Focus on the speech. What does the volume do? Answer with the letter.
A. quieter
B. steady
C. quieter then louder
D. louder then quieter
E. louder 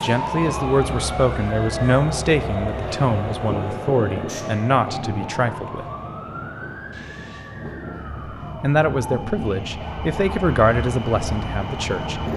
B.